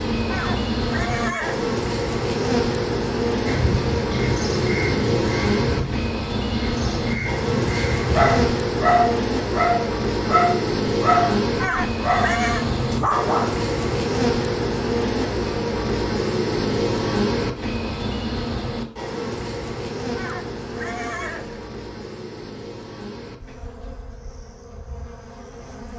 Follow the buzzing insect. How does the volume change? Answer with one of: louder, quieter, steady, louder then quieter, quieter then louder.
quieter.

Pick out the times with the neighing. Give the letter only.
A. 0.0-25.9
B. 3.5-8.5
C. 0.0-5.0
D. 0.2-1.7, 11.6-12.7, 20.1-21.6
D.